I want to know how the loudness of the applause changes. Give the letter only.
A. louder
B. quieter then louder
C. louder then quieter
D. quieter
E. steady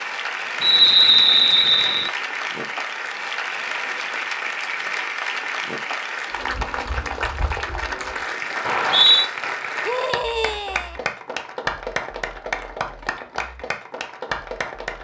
E.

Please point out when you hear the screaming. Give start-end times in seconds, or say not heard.
9.8-10.9.